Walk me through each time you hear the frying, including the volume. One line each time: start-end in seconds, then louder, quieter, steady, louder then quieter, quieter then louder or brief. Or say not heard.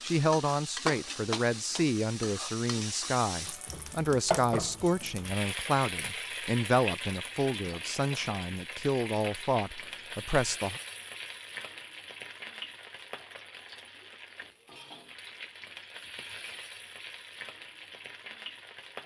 0.0-19.0 quieter.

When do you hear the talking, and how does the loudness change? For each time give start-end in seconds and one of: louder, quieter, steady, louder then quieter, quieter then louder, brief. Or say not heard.
0.0-10.8 steady.